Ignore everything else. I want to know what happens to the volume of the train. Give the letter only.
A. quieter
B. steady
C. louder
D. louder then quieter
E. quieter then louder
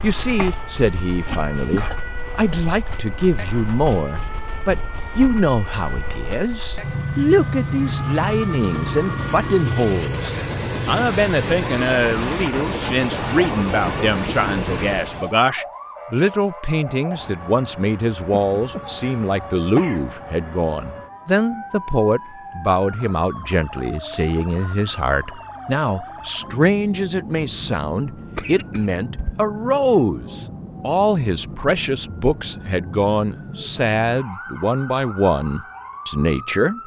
C.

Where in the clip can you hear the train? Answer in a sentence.
You can hear the train from 0.0 to 15.3 s.